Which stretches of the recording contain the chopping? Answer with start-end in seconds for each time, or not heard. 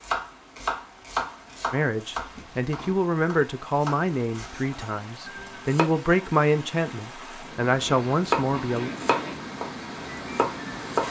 0.0-5.8, 8.2-11.0.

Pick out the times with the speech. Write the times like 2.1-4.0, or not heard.
1.7-8.9.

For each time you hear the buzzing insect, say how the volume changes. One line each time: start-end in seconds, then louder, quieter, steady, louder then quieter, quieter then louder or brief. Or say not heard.
not heard.